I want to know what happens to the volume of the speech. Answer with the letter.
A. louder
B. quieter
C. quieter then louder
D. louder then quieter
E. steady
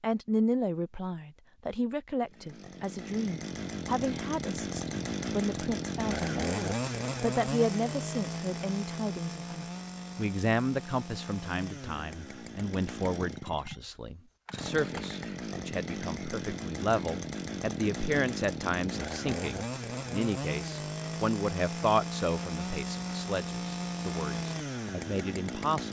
E.